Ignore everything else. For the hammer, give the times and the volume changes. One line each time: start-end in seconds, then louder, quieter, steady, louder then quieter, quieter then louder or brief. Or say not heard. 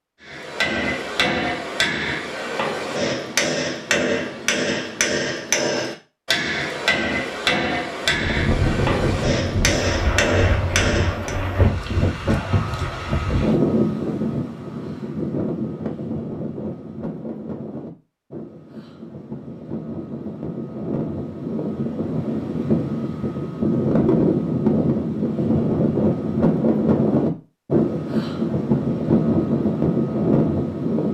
0.2-11.3 steady.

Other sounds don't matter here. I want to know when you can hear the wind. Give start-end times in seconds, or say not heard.
8.1-31.0.